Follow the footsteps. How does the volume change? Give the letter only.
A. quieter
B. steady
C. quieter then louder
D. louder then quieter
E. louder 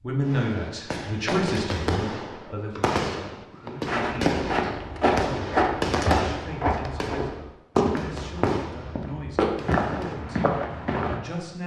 B.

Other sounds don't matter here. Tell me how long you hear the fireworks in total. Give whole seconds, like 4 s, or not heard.
10 s.